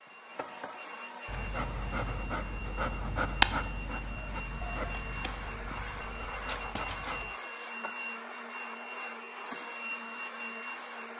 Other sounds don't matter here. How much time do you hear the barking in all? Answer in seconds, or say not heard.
6 s.